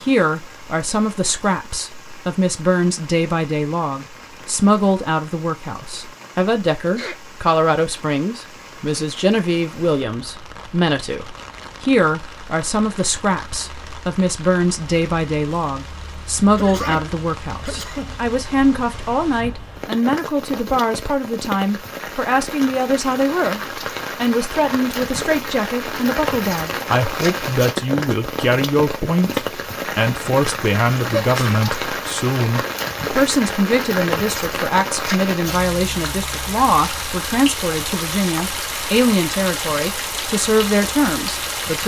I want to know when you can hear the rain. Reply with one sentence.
The rain can be heard from 0.0 to 41.8 s.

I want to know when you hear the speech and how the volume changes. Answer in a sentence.
You can hear the speech from 0.0 to 41.8 s, at a steady volume.